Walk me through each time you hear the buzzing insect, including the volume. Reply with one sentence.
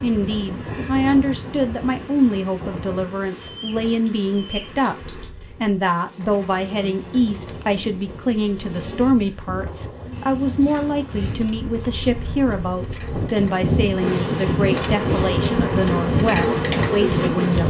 You can hear the buzzing insect from 0.0 to 17.6 s, getting louder.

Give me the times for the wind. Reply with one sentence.
The wind can be heard from 0.0 to 17.6 s.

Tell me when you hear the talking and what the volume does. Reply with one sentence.
The talking can be heard from 0.0 to 17.6 s, at a steady volume.